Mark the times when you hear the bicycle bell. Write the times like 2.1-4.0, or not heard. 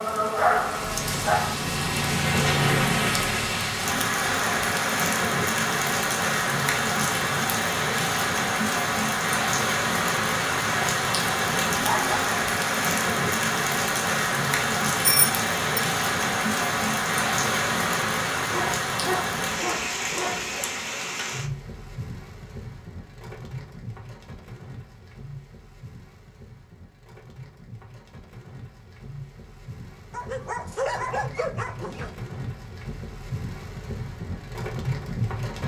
15.1-15.8.